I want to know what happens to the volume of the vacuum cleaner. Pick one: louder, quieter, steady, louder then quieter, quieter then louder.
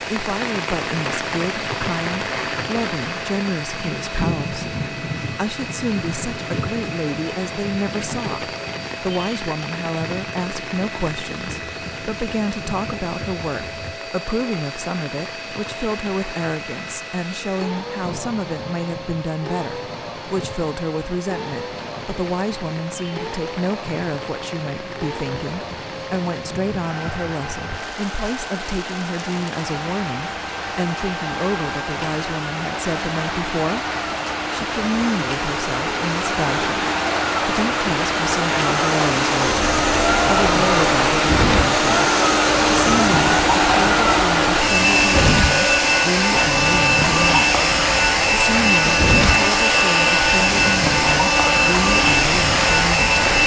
louder.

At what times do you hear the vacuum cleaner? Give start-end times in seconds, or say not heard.
0.0-53.4.